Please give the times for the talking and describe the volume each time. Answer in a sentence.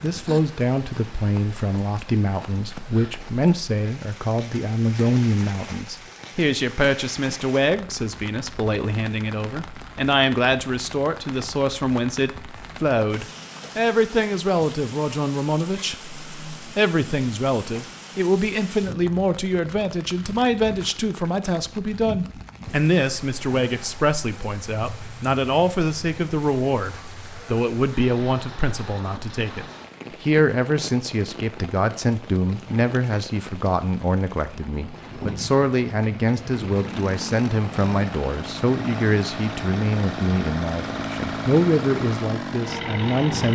You can hear the talking from 0.0 to 43.5 s, at a steady volume.